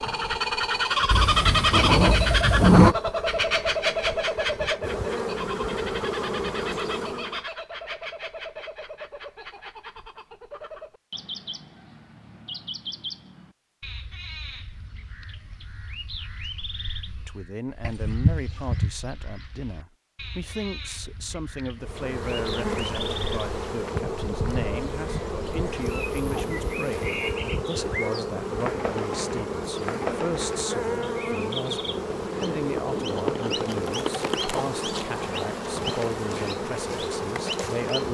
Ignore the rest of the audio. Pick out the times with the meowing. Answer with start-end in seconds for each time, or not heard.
1.1-3.0, 17.8-18.9, 25.8-27.4.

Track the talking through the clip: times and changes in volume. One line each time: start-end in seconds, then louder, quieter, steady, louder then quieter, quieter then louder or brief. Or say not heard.
17.2-38.0 steady.